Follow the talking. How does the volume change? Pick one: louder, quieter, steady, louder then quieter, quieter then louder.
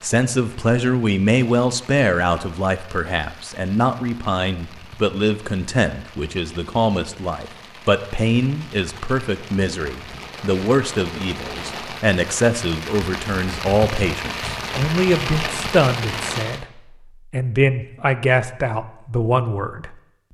steady.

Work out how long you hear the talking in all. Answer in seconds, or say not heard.
20 s.